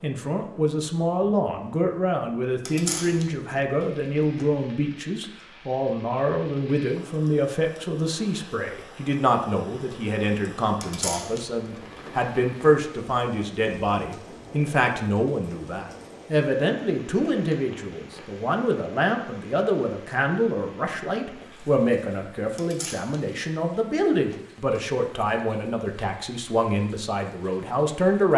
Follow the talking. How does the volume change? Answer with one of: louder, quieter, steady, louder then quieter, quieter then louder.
steady.